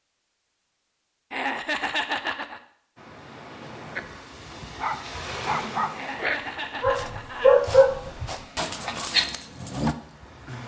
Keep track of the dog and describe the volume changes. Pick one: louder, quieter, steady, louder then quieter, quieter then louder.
louder then quieter.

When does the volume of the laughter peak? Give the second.
2 s.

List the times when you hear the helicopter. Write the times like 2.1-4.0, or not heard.
not heard.